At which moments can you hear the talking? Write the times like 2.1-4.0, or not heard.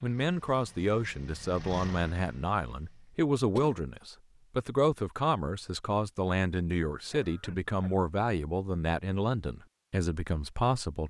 0.0-11.0.